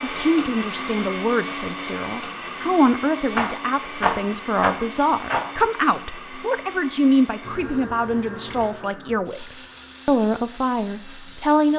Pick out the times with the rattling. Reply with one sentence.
You can hear the rattling from 3.3 to 5.5 s.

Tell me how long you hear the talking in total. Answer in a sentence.
You can hear the talking for 12 seconds altogether.